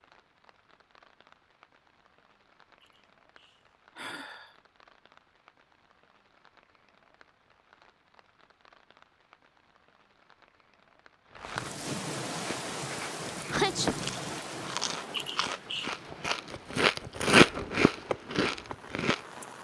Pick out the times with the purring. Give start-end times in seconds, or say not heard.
not heard.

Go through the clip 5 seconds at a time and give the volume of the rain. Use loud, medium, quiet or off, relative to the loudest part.
quiet, quiet, loud, medium.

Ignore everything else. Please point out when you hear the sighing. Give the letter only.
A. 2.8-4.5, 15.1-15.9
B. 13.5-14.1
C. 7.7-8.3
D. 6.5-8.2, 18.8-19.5
A.